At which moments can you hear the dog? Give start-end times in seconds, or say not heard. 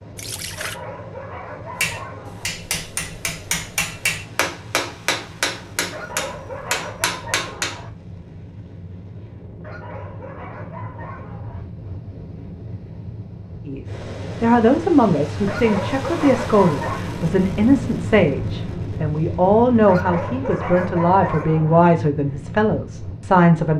0.6-2.5, 5.9-7.9, 9.6-11.7, 15.4-17.0, 19.9-21.9.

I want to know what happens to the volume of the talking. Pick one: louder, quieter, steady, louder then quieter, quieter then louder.
steady.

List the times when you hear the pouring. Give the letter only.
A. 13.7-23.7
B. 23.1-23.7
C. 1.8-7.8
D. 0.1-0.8
D.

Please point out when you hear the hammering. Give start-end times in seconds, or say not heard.
1.8-7.8.